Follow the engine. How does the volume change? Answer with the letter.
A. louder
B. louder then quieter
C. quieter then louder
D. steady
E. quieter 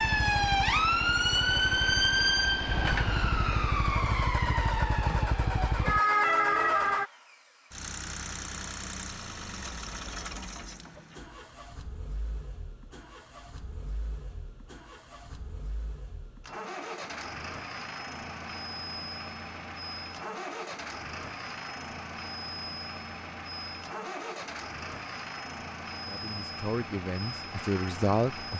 C.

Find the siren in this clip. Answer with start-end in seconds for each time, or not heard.
0.0-7.1.